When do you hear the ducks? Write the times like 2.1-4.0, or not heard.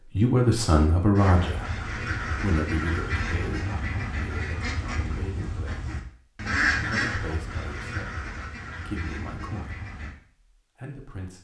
1.1-10.2.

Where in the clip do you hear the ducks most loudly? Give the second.
7 s.